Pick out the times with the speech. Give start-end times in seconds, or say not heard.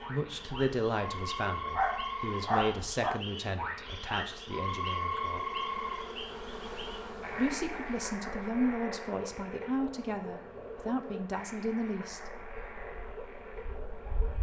0.0-5.5, 7.3-12.3.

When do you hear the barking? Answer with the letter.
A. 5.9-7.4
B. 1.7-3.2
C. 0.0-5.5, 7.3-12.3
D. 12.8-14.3
B.